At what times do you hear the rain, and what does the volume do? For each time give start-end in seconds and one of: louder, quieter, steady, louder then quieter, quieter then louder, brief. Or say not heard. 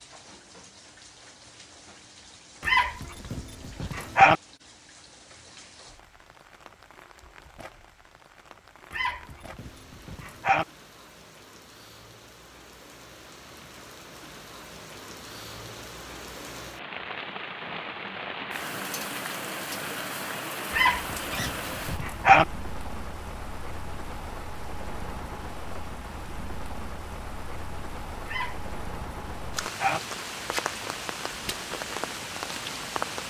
0.0-33.2 louder.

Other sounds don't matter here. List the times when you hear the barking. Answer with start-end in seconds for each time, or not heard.
2.6-4.3, 8.9-10.7, 20.7-22.4, 28.2-30.0.